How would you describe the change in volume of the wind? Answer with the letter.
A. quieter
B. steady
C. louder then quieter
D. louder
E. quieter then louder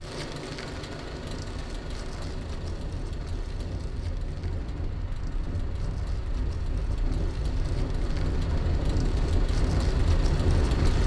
D.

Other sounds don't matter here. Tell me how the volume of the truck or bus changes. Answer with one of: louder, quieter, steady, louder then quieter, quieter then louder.
quieter then louder.